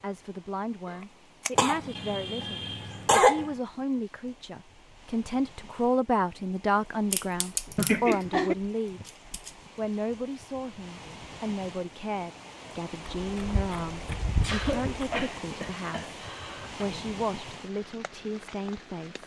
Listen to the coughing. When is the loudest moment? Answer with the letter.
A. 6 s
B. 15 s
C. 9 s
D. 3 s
D.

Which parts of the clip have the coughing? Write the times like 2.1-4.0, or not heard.
1.6-3.5, 7.8-8.6, 14.4-16.9.